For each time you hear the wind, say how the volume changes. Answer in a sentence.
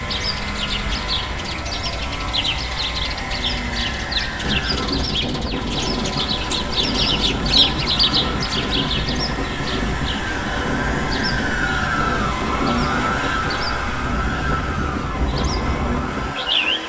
The wind can be heard from 4.4 to 16.8 s, at a steady volume.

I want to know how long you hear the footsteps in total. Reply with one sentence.
You can't hear the footsteps here.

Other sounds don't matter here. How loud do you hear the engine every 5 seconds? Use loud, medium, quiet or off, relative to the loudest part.
medium, medium, loud, medium.